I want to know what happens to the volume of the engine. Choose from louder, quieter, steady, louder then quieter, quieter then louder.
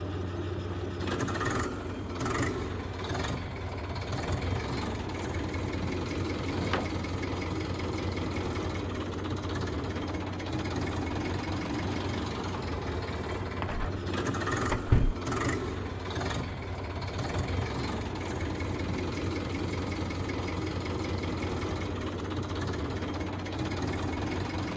steady.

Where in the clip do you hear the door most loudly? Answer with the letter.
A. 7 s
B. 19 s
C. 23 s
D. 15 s
D.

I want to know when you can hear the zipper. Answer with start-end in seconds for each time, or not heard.
not heard.